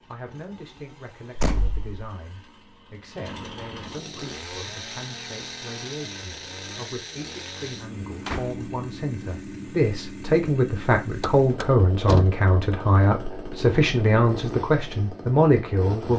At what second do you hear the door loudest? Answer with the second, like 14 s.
12 s.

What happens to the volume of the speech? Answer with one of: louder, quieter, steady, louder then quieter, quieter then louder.
louder.